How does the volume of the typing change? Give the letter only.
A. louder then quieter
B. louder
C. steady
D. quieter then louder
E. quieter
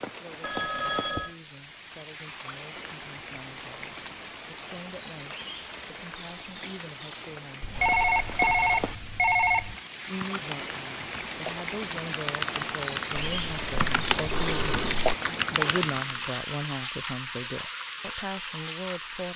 B.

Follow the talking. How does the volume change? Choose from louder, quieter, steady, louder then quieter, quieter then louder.
louder.